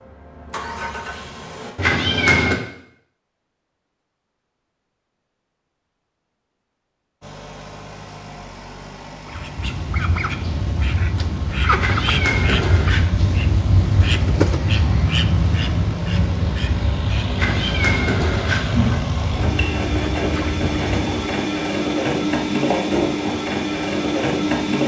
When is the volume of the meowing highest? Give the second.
2 s.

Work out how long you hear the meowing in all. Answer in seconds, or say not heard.
4 s.